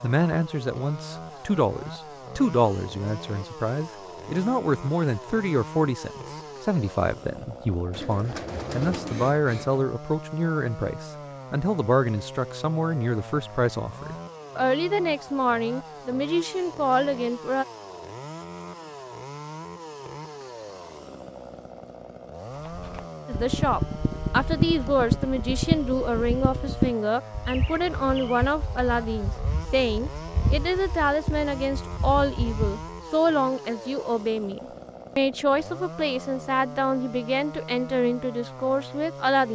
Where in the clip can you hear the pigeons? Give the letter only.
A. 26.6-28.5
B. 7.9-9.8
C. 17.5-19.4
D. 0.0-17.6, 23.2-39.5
B.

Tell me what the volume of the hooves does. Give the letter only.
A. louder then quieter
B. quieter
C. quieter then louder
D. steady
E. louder
B.